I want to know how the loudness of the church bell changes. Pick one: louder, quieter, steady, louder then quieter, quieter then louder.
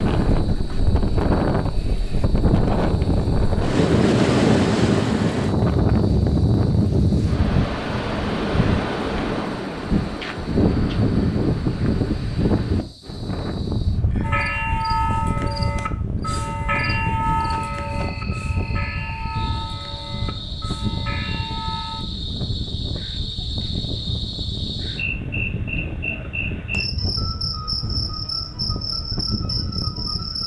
quieter.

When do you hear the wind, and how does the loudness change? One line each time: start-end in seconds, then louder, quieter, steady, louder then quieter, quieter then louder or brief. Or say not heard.
0.0-30.4 quieter.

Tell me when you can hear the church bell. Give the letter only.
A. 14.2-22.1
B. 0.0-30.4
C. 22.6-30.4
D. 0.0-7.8
A.